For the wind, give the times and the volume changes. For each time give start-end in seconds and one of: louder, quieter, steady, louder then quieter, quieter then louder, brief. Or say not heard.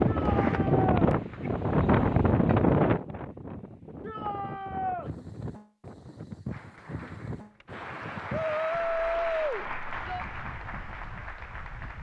0.0-11.9 quieter.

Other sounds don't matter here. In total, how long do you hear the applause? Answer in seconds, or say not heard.
7 s.